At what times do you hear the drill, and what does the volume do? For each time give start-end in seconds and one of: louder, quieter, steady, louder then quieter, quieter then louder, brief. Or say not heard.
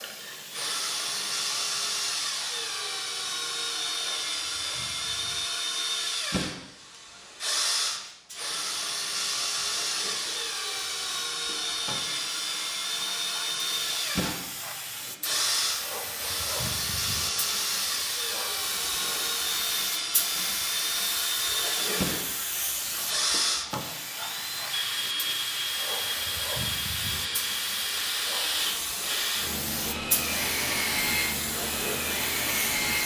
0.0-33.0 steady.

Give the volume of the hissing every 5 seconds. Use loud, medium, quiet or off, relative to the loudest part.
quiet, quiet, medium, loud, loud, loud, loud.